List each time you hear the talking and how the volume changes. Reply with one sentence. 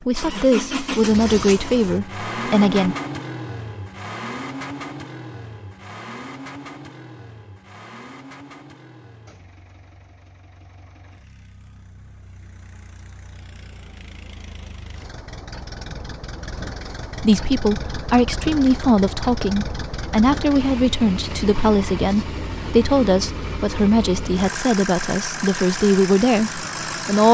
The talking can be heard briefly from 0.1 to 3.0 s; and from 17.1 to 27.2 s, at a steady volume.